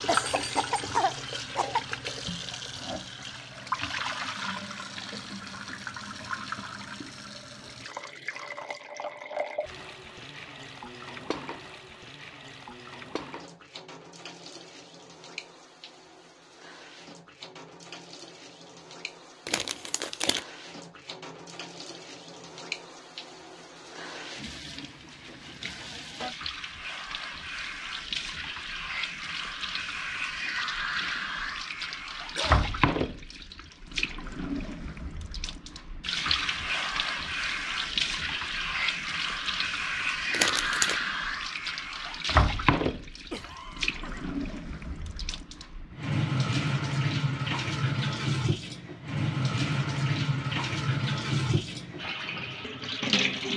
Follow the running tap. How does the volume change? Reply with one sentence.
The volume of the running tap goes down, then up.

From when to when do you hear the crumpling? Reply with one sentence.
The crumpling can be heard from 19.4 to 20.4 s and from 40.3 to 41.0 s.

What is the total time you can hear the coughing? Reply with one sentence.
The coughing can be heard for 4 seconds in total.